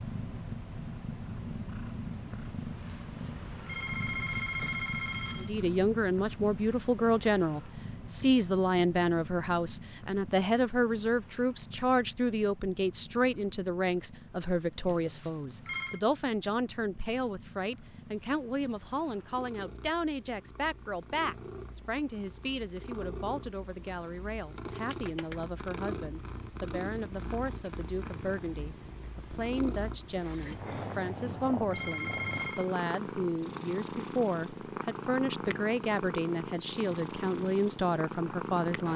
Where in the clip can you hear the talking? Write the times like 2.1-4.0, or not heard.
5.4-38.9.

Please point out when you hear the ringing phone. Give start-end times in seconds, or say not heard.
2.9-5.5, 14.8-16.0, 30.9-32.7.